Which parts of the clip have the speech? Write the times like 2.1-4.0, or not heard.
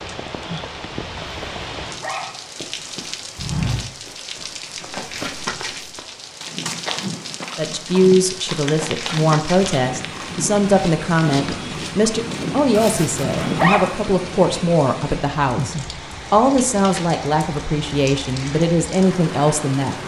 7.5-20.0.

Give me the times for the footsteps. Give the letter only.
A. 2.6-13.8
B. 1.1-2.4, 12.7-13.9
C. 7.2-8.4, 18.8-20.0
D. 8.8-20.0
A.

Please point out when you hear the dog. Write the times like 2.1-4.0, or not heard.
1.1-2.4, 12.7-13.9.